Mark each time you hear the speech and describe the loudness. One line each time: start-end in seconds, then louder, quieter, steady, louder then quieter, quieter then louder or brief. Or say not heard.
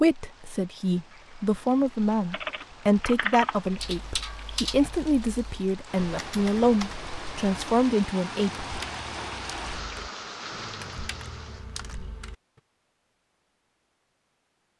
0.0-8.7 steady.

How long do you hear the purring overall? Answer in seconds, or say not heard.
not heard.